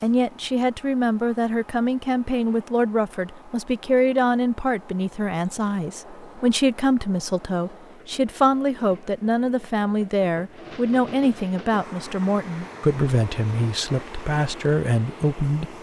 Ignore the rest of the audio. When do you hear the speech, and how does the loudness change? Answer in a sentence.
You can hear the speech from 0.0 to 15.7 s, at a steady volume.